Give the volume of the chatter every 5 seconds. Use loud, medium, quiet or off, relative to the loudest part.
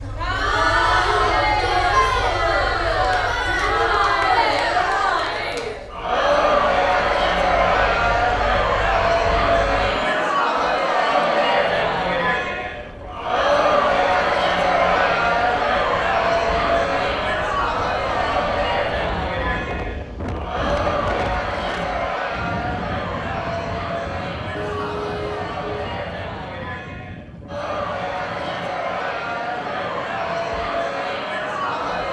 loud, loud, loud, loud, medium, medium, medium.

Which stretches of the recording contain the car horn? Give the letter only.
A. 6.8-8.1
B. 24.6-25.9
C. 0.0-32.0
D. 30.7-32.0
B.